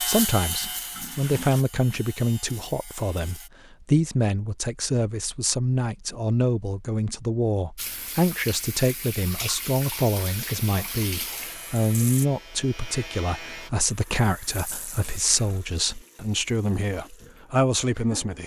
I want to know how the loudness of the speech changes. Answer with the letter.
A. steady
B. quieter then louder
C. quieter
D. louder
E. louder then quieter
A.